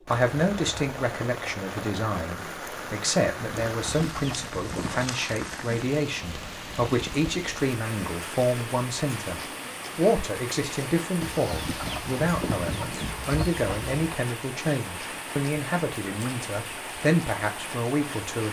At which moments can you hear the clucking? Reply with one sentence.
The clucking can be heard from 3.5 to 5.1 s and from 11.2 to 13.9 s.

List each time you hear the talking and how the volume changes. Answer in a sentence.
The talking can be heard from 0.1 to 18.4 s, at a steady volume.